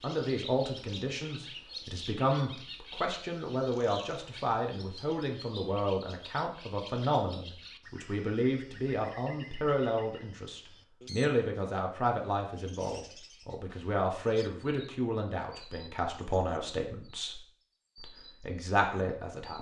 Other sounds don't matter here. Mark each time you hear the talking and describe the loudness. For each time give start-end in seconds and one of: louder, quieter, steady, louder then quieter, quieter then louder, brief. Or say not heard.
0.0-17.4 steady
18.0-19.5 brief.